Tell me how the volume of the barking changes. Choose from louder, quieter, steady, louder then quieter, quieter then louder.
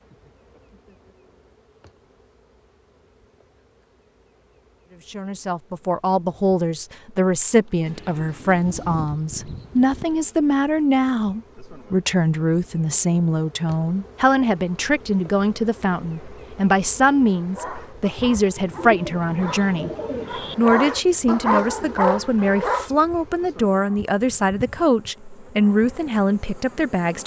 louder.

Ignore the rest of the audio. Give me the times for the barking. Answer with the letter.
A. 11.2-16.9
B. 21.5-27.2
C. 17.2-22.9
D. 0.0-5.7
C.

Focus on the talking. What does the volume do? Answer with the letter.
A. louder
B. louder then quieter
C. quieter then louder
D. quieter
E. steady
E.